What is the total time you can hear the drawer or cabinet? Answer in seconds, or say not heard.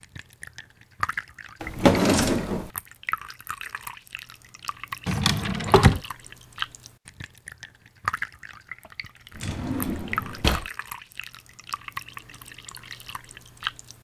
3 s.